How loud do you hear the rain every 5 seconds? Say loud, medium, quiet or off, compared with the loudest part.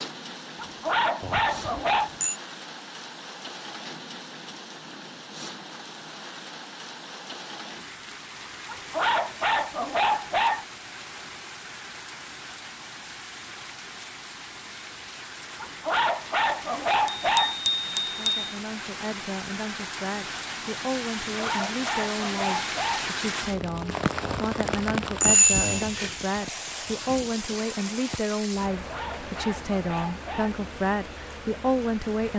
medium, medium, medium, medium, loud, loud, medium.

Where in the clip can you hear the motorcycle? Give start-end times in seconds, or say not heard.
not heard.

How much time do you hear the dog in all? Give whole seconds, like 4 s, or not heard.
9 s.